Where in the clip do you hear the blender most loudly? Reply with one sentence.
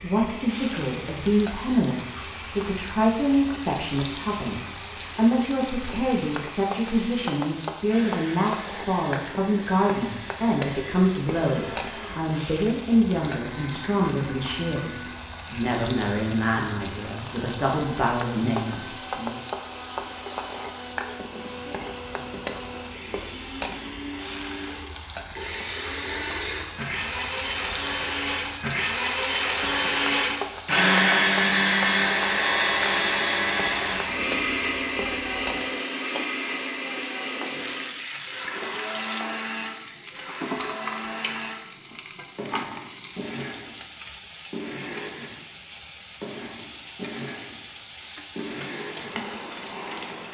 The loudest moment of the blender is at 31 seconds.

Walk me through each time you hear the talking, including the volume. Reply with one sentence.
The talking can be heard from 0.0 to 19.4 s, at a steady volume.